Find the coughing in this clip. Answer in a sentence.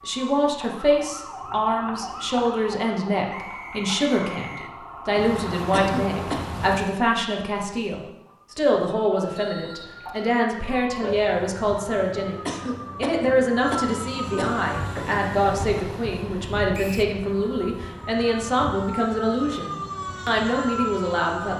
You can hear the coughing from 5.7 to 6.4 s and from 12.4 to 14.7 s.